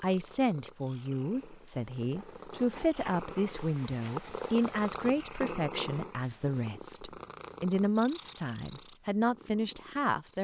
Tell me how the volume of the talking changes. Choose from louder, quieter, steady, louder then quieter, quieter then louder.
steady.